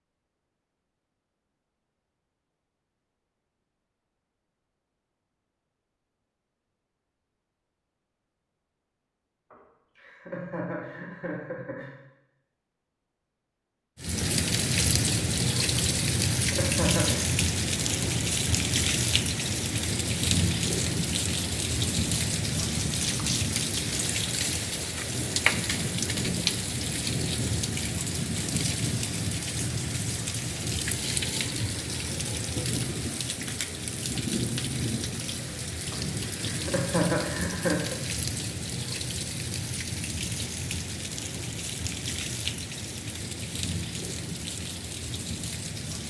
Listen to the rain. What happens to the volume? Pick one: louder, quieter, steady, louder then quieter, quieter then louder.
quieter.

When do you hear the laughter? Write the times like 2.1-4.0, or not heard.
9.5-11.9, 15.8-17.2, 35.9-38.0.